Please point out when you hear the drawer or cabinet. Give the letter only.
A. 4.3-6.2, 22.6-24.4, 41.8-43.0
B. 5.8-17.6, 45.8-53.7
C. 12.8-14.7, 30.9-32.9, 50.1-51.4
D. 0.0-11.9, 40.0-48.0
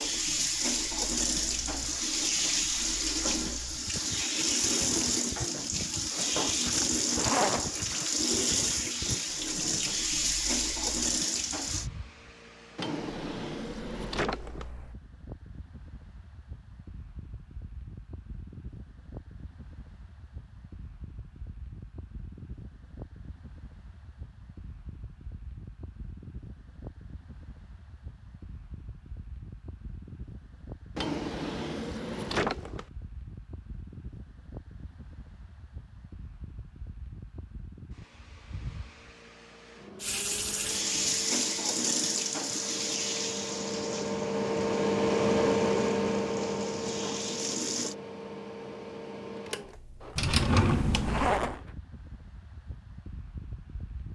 C.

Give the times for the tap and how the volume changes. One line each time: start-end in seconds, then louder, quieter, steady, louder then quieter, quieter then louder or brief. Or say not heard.
0.0-11.9 steady
40.0-48.0 quieter then louder.